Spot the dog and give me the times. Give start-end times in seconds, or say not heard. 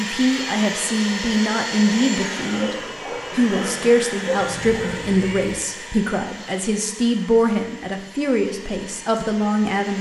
2.4-5.2.